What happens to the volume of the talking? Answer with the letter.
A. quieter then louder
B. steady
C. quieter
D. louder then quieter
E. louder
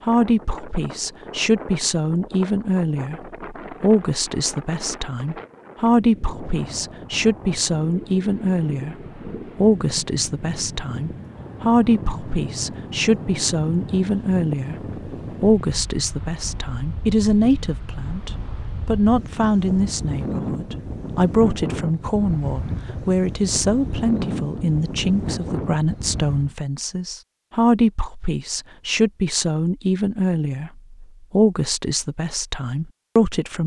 B.